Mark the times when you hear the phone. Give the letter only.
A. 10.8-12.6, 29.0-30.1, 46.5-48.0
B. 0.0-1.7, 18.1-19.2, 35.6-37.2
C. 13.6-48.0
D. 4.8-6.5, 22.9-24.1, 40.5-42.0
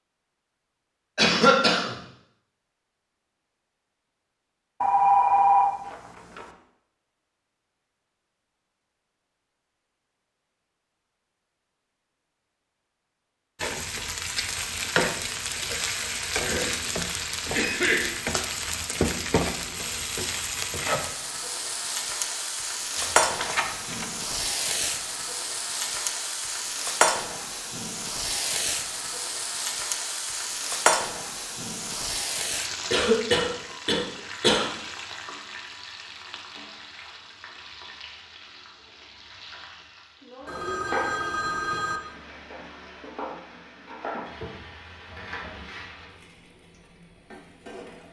D.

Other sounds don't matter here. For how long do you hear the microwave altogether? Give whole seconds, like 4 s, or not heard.
not heard.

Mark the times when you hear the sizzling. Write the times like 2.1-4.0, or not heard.
13.6-48.0.